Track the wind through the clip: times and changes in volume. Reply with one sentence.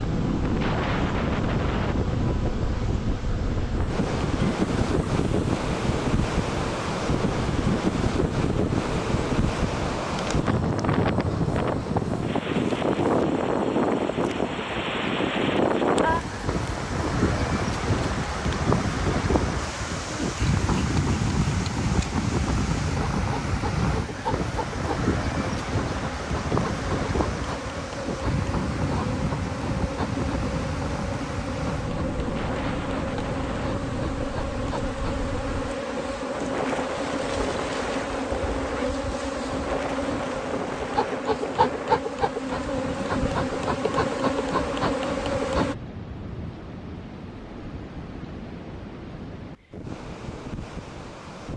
You can hear the wind from 0.0 to 51.5 s, getting quieter.